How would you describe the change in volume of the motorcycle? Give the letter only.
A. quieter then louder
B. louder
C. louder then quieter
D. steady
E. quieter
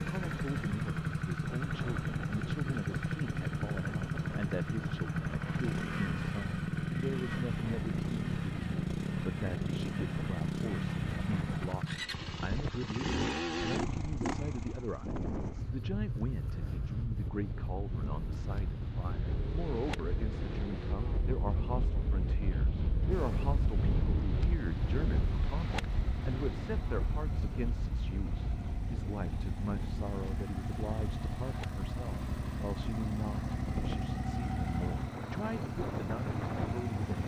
A.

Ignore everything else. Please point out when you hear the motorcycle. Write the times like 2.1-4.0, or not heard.
0.0-37.2.